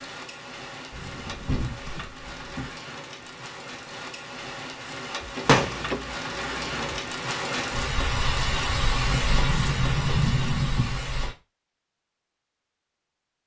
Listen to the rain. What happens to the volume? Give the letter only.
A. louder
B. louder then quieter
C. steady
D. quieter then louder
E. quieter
A.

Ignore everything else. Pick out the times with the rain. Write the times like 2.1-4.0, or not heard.
0.0-11.3.